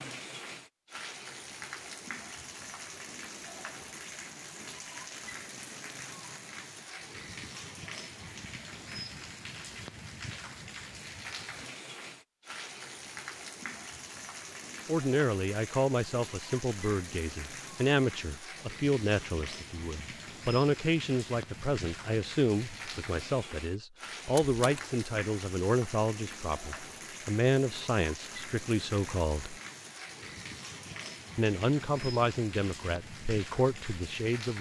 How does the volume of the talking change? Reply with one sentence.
The volume of the talking stays about the same.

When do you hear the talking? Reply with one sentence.
You can hear the talking from 14.8 to 29.6 s and from 31.4 to 34.5 s.